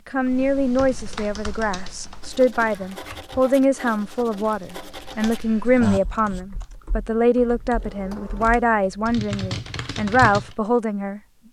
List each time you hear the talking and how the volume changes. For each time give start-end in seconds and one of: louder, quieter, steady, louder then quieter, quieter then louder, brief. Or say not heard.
0.1-11.2 steady.